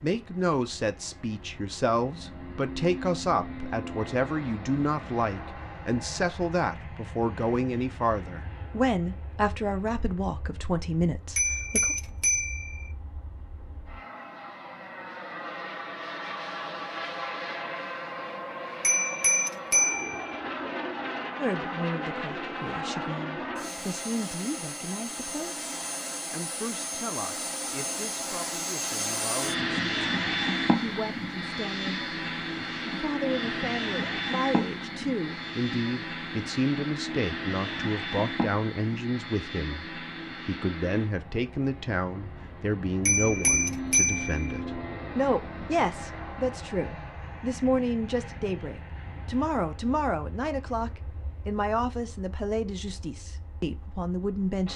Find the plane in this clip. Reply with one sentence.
The plane can be heard from 0.0 to 54.7 s.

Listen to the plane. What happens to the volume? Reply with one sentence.
The volume of the plane goes up, then down.